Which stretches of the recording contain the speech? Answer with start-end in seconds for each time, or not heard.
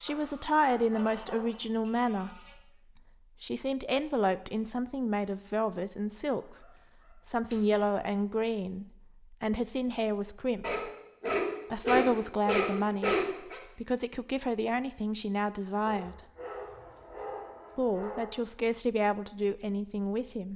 0.0-2.4, 3.4-6.7, 7.2-10.8, 11.7-13.2, 13.8-16.2, 17.8-20.5.